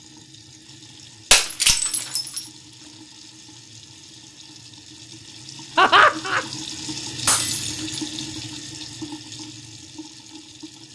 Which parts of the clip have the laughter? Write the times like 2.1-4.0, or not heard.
5.8-6.5.